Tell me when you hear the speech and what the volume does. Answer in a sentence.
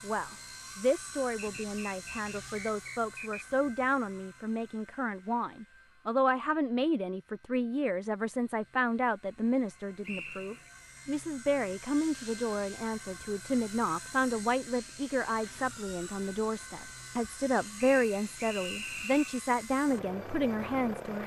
The speech can be heard from 0.0 to 21.2 s, at a steady volume.